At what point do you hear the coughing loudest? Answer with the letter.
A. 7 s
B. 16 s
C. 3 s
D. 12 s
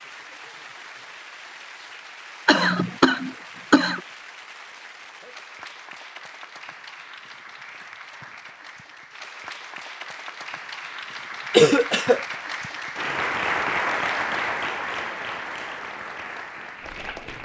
D.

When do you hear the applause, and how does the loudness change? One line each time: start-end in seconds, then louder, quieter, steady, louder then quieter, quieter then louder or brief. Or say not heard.
0.0-17.3 louder.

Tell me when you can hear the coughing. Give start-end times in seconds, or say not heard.
2.5-4.0, 11.5-12.2.